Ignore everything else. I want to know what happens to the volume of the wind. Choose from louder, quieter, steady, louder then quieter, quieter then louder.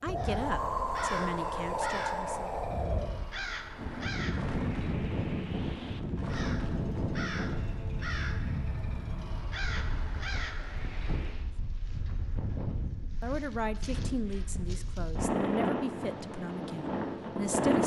quieter then louder.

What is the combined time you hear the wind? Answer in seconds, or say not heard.
18 s.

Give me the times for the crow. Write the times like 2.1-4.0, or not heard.
0.1-11.5.